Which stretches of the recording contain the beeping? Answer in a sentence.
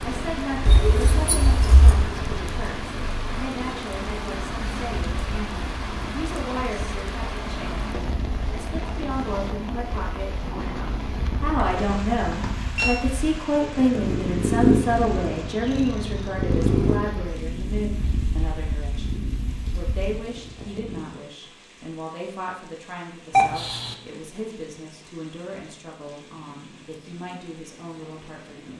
The beeping can be heard from 0.7 to 2.0 s, from 11.6 to 13.1 s and from 23.3 to 23.9 s.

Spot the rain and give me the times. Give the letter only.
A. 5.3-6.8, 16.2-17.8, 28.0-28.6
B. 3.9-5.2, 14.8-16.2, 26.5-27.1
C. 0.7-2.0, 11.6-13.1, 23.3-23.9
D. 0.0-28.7
D.